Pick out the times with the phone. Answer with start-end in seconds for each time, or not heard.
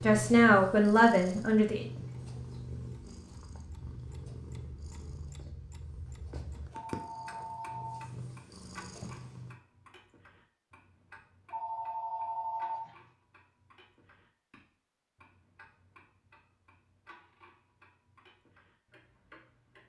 6.7-8.1, 11.5-12.9.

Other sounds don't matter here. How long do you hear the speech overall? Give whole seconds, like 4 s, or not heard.
2 s.